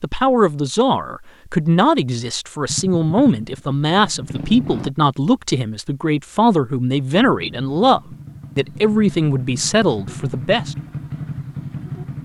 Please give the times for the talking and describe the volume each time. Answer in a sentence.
The talking can be heard from 0.0 to 10.8 s, at a steady volume.